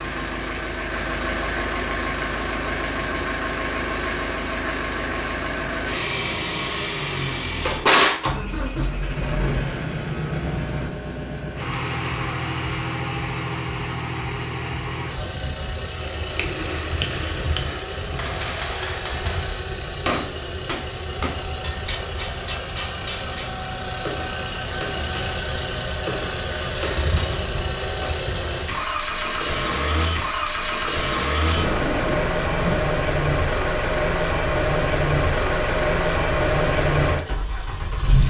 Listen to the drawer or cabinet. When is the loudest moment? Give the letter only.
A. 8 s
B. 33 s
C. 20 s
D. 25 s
A.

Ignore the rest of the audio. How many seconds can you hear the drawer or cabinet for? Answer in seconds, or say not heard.
2 s.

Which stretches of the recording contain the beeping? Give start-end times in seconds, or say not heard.
not heard.